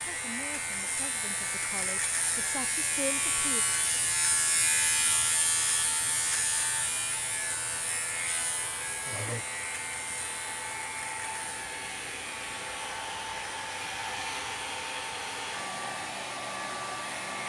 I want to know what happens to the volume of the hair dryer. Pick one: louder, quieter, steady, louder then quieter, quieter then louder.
louder.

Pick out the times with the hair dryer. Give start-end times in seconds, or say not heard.
0.0-17.4.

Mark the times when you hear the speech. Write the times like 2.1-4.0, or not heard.
0.1-3.6.